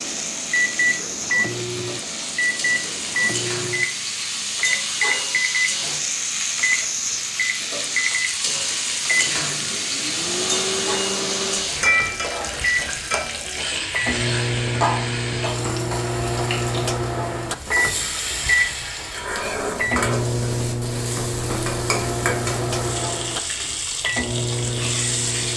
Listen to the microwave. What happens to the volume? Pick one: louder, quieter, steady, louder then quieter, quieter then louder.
steady.